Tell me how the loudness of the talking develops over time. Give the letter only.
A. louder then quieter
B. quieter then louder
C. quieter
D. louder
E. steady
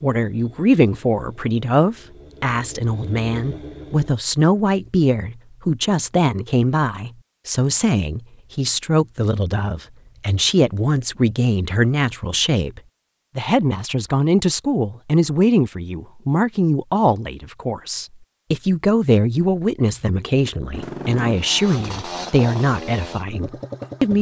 E.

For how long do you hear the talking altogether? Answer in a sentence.
The talking can be heard for 24 seconds in total.